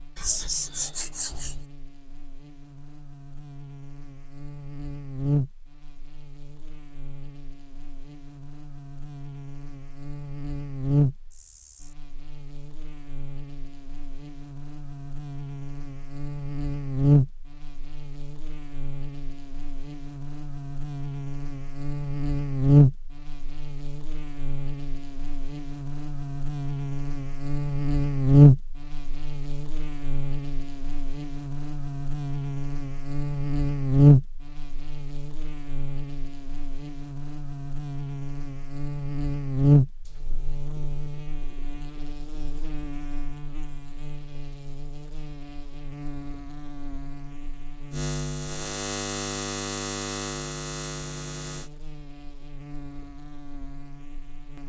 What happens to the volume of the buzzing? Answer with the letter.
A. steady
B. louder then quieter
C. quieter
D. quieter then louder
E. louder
B.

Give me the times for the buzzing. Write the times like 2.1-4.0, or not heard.
0.0-54.6.